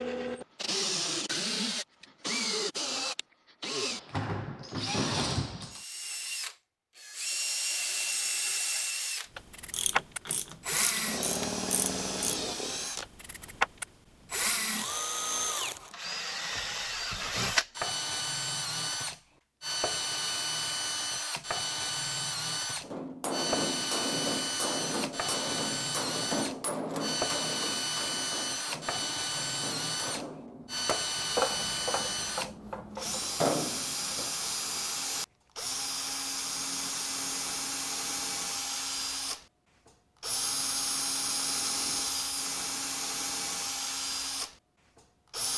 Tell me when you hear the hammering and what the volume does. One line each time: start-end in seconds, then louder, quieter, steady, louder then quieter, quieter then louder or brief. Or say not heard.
22.8-34.3 quieter then louder.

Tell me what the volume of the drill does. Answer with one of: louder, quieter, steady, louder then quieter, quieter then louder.
steady.